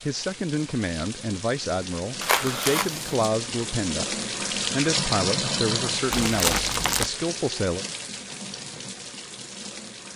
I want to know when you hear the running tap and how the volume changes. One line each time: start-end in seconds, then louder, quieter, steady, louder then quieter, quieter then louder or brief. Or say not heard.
0.0-10.1 louder then quieter.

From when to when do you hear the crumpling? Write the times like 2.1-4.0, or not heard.
2.2-3.0, 6.1-7.1.